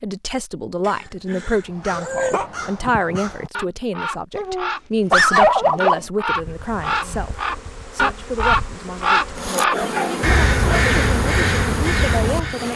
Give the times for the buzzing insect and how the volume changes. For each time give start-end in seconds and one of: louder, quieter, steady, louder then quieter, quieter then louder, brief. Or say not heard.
6.2-12.7 louder.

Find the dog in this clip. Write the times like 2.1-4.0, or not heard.
0.8-2.5, 4.3-6.0, 9.7-10.9.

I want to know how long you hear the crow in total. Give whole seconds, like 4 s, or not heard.
11 s.